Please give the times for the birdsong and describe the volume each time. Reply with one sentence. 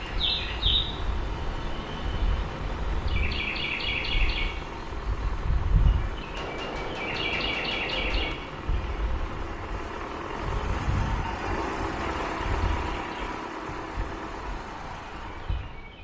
You can hear the birdsong from 0.0 to 15.9 s, getting quieter.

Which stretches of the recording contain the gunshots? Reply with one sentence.
The gunshots can be heard from 6.3 to 8.3 s.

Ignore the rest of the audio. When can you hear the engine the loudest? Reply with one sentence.
The loudest moment of the engine is at 12 seconds.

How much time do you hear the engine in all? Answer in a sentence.
You can hear the engine for 16 seconds altogether.